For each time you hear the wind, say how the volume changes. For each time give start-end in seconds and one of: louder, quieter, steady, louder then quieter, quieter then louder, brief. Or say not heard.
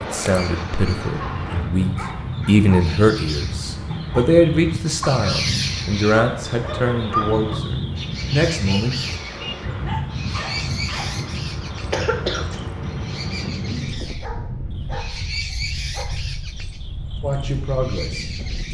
0.0-18.6 quieter.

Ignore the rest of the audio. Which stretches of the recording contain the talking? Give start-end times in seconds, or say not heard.
0.0-9.5, 17.2-18.4.